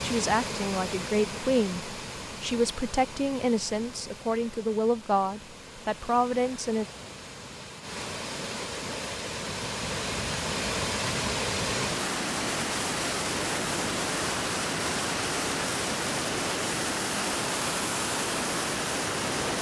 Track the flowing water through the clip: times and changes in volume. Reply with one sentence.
You can hear the flowing water from 0.0 to 19.5 s, getting quieter then louder.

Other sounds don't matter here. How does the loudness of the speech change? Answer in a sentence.
The volume of the speech stays about the same.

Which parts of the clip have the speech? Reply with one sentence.
The speech can be heard from 0.0 to 6.8 s.